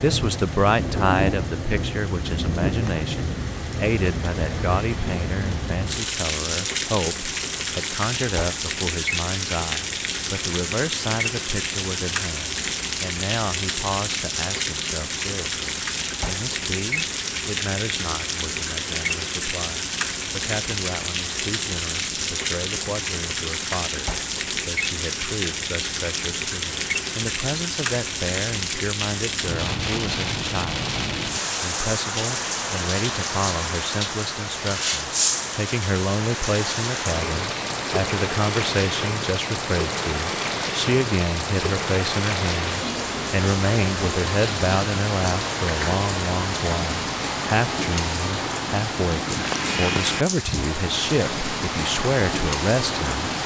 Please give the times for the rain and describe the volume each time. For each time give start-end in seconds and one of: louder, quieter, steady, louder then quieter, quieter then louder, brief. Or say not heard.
0.0-53.4 steady.